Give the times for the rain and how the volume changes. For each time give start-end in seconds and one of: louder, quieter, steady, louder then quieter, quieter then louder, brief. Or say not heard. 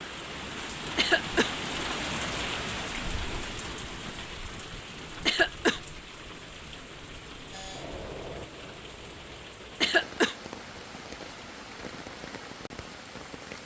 0.0-13.6 quieter.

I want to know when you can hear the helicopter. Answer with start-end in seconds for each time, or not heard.
7.5-9.4.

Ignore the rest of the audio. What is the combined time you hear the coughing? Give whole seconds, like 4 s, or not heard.
2 s.